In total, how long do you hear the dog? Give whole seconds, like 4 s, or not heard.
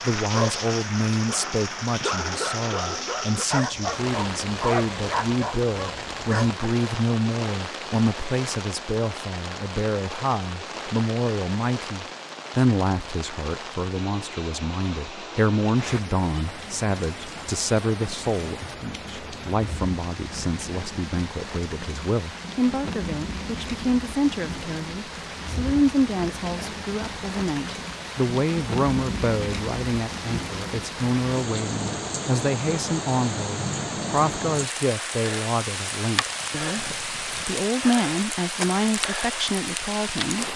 6 s.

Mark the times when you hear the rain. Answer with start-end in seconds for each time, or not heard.
0.0-40.5.